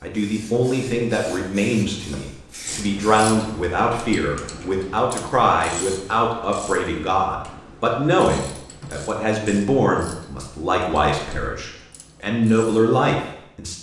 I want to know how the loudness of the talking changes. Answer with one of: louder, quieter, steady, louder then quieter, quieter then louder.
steady.